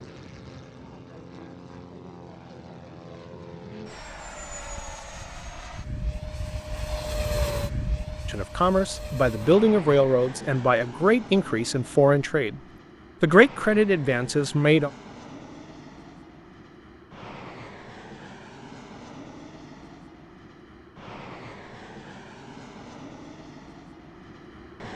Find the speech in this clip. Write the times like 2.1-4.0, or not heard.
8.2-12.6, 13.2-14.9.